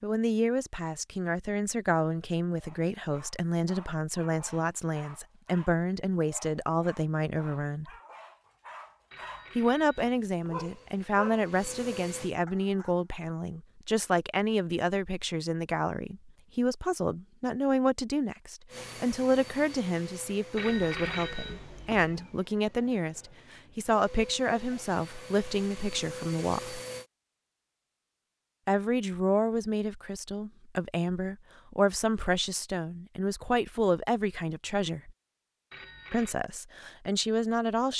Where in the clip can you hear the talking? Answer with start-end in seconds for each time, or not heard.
0.0-7.9, 9.6-26.8, 28.6-35.1, 36.1-37.9.